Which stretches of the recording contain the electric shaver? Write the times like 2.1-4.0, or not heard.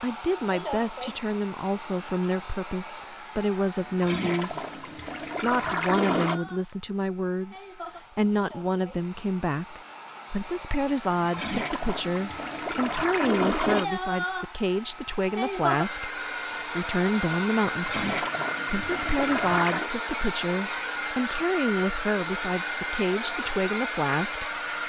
not heard.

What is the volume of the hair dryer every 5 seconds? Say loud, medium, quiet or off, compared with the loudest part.
medium, quiet, medium, loud, loud.